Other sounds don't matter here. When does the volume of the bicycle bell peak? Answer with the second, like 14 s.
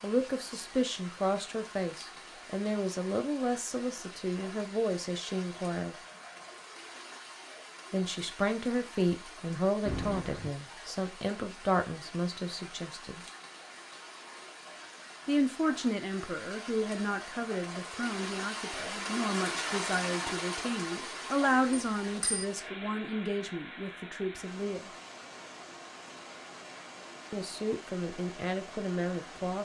10 s.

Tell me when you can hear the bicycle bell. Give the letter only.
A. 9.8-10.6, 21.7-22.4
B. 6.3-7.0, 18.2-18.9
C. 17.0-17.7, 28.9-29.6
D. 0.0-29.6
A.